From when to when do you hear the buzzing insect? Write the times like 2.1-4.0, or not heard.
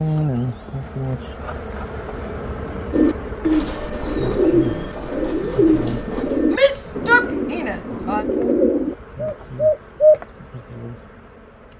0.0-11.7.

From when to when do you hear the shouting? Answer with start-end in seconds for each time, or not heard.
6.5-8.2.